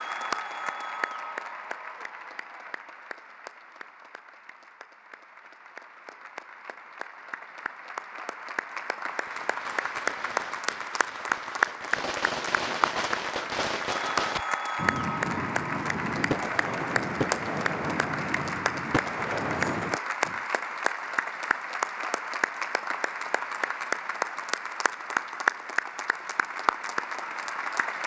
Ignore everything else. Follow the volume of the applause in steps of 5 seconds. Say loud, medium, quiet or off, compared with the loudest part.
medium, medium, loud, loud, loud, loud.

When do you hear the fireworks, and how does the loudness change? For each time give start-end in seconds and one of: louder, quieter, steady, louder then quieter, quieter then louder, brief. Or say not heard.
9.1-20.4 louder.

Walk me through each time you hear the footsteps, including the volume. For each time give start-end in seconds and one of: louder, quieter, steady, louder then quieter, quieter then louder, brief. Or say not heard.
not heard.